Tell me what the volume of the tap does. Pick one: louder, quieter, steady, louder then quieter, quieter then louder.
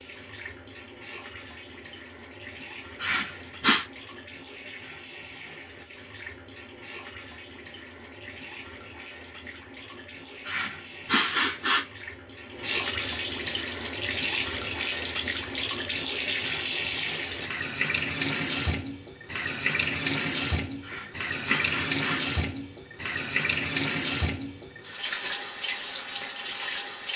louder.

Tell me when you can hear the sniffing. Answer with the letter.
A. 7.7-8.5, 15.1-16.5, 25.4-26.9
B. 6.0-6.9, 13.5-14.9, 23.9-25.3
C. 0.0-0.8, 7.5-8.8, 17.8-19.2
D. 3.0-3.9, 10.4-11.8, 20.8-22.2
D.